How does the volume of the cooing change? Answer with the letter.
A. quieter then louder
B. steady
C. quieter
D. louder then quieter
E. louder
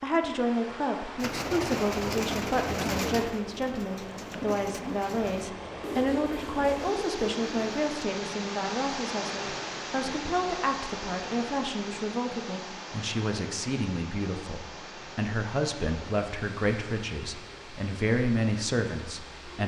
C.